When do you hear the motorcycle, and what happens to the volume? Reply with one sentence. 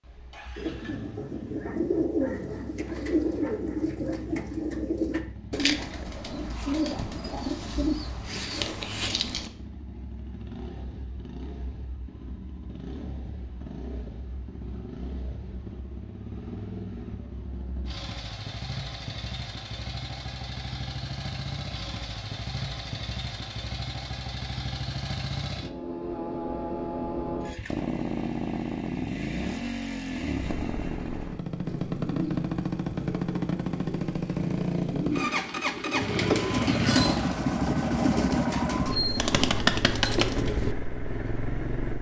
You can hear the motorcycle from 0.0 to 41.9 s, getting louder.